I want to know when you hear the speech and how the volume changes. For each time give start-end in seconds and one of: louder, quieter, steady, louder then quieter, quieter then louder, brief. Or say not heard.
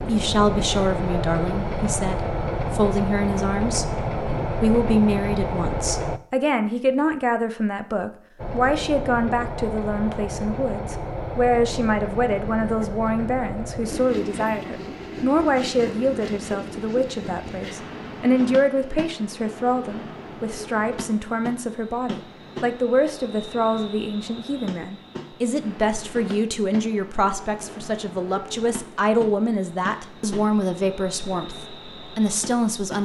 0.1-32.9 steady.